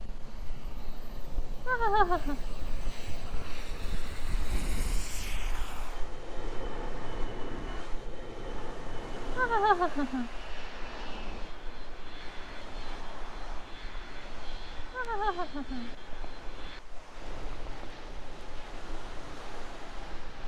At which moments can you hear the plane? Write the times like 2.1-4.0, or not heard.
0.0-20.4.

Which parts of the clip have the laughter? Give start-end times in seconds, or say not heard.
1.6-2.4, 9.3-10.3, 14.9-15.9.